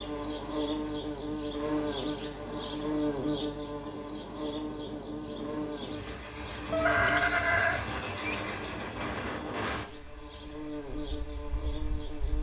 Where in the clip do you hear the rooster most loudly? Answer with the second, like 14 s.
7 s.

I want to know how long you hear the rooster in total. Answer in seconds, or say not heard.
2 s.